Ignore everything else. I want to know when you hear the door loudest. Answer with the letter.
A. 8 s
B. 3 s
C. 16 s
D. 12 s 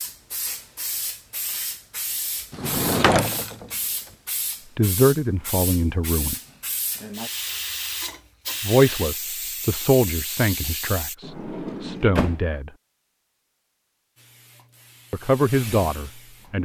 B.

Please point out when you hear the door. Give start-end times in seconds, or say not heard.
2.5-3.7, 11.2-12.4.